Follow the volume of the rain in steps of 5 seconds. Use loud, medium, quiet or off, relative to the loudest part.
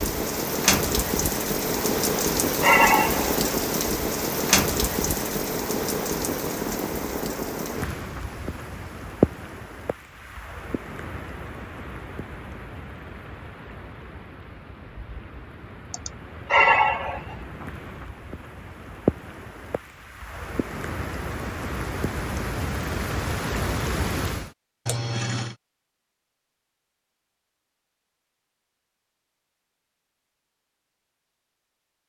loud, loud, quiet, medium, medium, off, off.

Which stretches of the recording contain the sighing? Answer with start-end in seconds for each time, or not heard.
2.0-3.5, 15.9-17.4, 24.9-25.5.